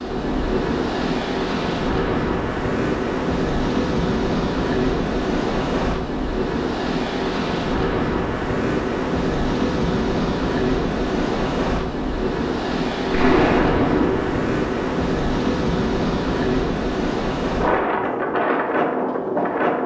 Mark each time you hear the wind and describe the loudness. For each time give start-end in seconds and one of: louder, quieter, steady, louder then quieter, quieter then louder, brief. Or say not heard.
0.0-19.8 steady.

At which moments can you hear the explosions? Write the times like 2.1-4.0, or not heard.
13.1-14.4.